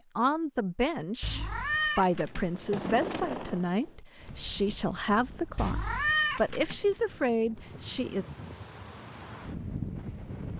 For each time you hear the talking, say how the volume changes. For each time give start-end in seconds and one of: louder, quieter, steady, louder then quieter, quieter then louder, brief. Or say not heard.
0.1-8.2 steady.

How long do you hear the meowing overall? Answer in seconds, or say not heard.
3 s.